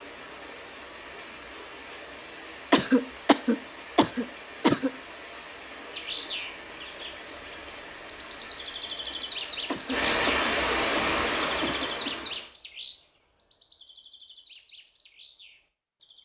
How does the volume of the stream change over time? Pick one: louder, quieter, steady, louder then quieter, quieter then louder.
louder.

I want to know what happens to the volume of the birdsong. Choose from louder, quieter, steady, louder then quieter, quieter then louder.
quieter.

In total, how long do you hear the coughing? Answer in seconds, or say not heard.
5 s.